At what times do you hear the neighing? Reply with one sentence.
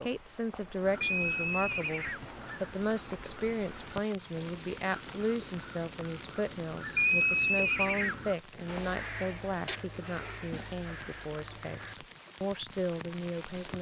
The neighing can be heard from 1.0 to 2.2 s and from 7.0 to 8.8 s.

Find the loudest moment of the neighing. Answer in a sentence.
The loudest moment of the neighing is at 7 seconds.